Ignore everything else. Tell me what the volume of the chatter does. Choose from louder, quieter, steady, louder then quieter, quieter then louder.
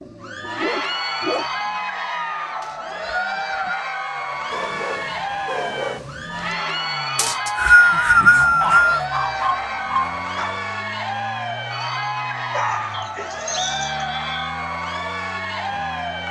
steady.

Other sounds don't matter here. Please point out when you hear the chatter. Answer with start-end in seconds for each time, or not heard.
0.1-16.2.